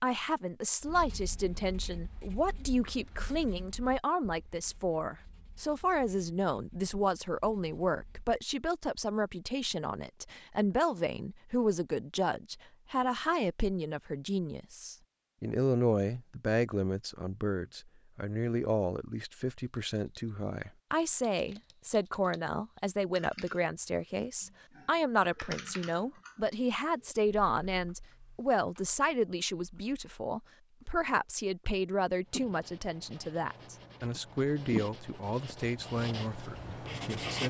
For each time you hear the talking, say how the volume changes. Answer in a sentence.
The talking can be heard from 0.0 to 37.4 s, at a steady volume.